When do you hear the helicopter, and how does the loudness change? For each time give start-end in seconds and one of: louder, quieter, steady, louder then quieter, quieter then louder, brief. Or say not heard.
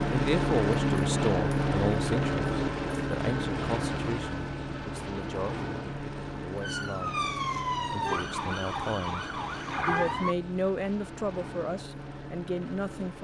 0.0-13.1 quieter.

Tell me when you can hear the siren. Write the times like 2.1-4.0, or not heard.
6.6-10.3.